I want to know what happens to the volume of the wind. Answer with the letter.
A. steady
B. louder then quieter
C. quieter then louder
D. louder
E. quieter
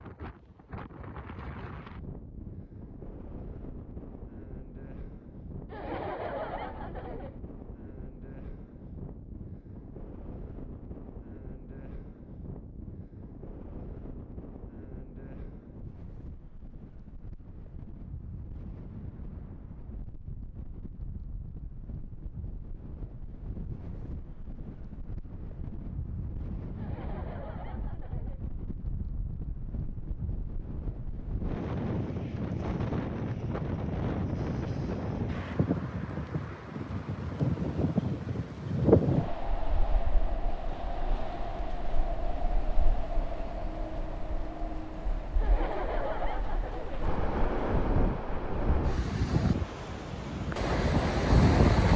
D.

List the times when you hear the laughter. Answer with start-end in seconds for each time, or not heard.
5.7-7.4, 26.8-28.4, 45.4-47.0.